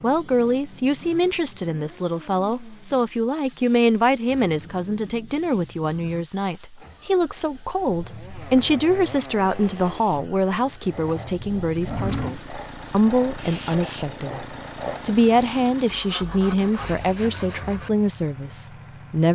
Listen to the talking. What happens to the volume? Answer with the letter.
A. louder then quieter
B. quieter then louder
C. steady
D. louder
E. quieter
C.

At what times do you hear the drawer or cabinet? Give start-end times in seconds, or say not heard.
11.8-12.4.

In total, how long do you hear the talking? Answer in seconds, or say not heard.
19 s.